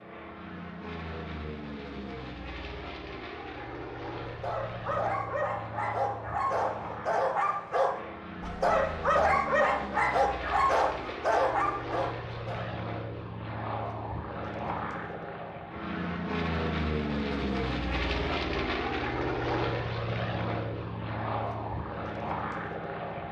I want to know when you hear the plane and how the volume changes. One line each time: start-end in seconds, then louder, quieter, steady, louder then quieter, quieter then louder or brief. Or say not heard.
0.0-23.2 louder.